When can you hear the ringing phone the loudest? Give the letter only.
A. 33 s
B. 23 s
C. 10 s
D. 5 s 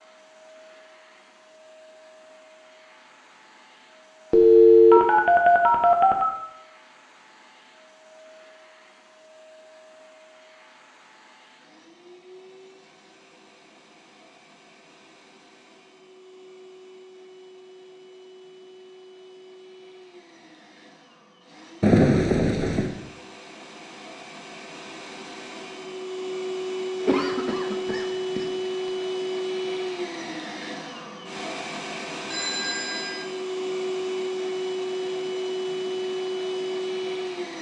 D.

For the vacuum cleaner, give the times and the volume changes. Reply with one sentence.
You can hear the vacuum cleaner from 0.0 to 37.5 s, getting louder.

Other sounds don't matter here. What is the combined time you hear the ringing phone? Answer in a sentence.
The ringing phone can be heard for 4 seconds in total.